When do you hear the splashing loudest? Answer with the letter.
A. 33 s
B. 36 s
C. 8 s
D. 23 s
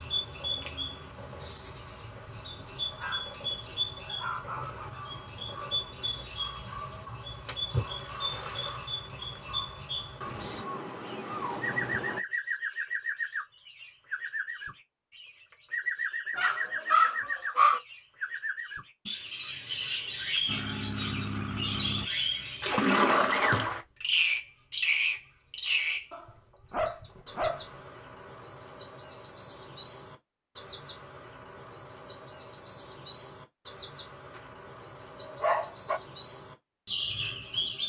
D.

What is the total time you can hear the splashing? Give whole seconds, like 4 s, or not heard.
3 s.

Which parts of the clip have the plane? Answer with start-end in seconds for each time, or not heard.
20.4-22.1.